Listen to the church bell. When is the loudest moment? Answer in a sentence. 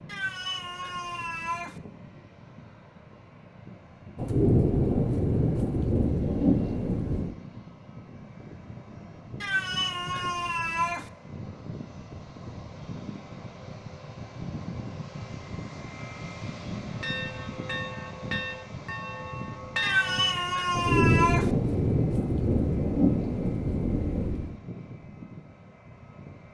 The loudest moment of the church bell is at 20 seconds.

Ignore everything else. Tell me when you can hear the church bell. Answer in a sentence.
You can hear the church bell from 16.9 to 20.4 s.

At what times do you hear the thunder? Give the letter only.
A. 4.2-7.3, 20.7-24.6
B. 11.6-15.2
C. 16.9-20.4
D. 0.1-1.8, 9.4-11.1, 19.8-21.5
A.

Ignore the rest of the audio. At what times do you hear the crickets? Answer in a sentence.
The crickets can't be heard in this clip.